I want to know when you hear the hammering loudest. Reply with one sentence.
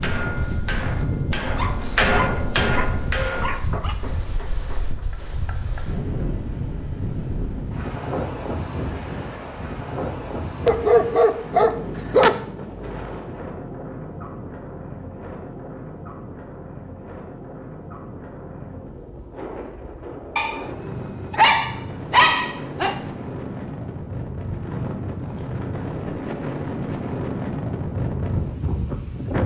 The loudest moment of the hammering is at 2 seconds.